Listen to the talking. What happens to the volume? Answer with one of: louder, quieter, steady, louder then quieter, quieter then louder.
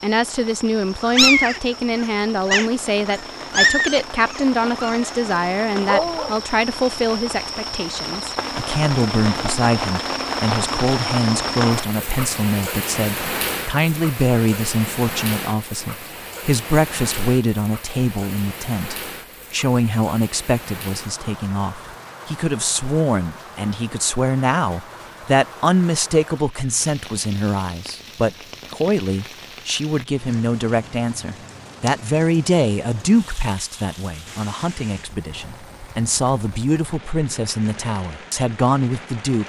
steady.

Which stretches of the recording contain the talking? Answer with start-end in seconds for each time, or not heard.
0.0-39.4.